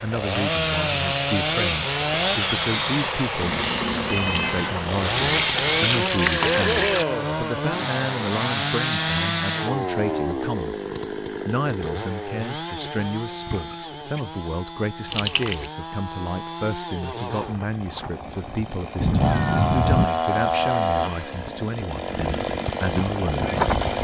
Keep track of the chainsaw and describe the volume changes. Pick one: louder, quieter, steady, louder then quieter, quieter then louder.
quieter then louder.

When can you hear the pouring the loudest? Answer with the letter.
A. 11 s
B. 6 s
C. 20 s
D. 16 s
B.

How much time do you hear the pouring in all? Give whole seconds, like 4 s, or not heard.
3 s.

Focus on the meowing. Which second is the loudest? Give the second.
20 s.